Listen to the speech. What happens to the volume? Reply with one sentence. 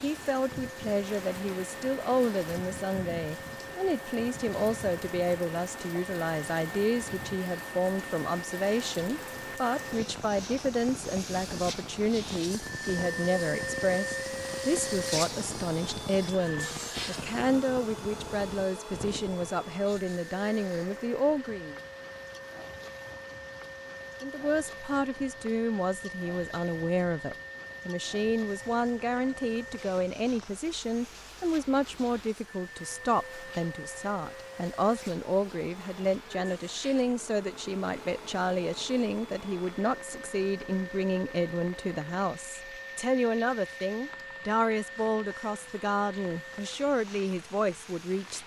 The loudness of the speech stays about the same.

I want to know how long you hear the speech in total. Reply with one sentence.
You can hear the speech for 46 seconds altogether.